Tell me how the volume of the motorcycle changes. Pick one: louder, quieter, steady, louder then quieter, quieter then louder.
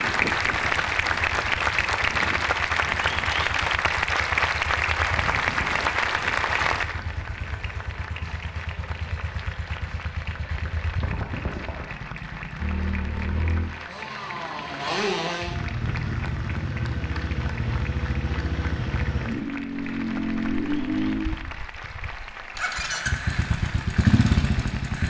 louder.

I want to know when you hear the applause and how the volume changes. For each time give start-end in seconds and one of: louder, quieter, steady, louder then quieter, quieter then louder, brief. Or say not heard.
0.0-25.0 quieter.